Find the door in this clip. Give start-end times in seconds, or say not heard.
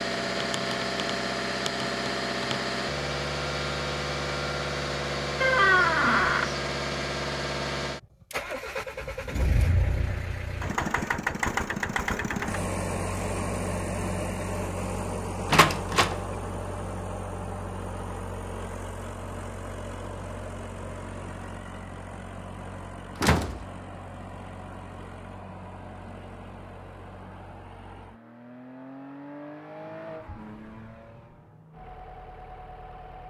5.4-6.5, 15.5-16.1, 23.1-23.6.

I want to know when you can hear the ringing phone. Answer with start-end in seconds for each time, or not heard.
not heard.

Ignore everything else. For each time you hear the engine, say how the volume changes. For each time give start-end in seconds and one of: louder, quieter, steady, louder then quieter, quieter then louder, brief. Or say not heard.
0.0-33.2 quieter.